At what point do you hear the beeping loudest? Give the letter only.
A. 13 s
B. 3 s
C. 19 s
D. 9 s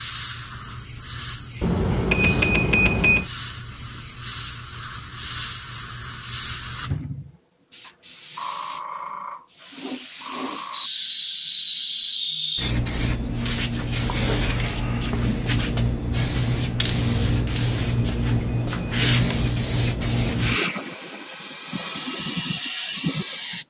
B.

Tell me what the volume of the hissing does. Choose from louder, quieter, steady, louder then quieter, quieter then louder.
louder.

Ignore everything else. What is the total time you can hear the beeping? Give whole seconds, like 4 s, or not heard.
3 s.